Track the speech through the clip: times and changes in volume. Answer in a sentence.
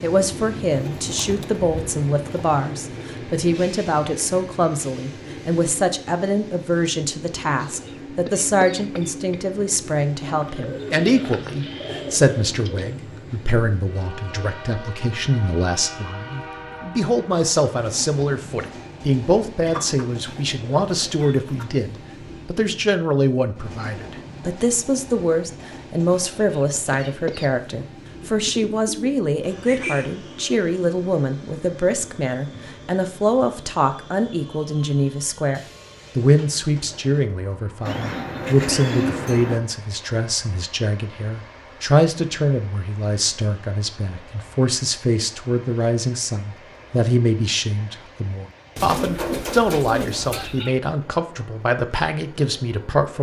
You can hear the speech from 0.0 to 53.1 s, at a steady volume.